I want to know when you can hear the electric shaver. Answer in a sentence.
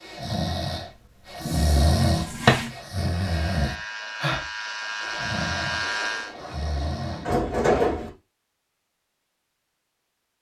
The electric shaver can be heard from 3.2 to 6.3 s.